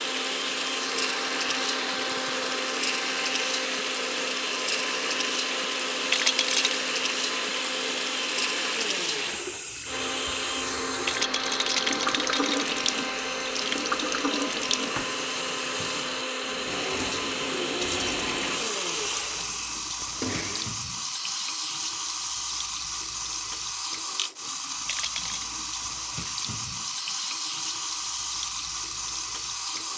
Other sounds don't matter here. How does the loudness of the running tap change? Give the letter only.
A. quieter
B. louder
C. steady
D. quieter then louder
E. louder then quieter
C.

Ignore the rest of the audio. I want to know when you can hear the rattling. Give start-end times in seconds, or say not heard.
6.0-6.8, 11.0-12.8, 24.9-25.4.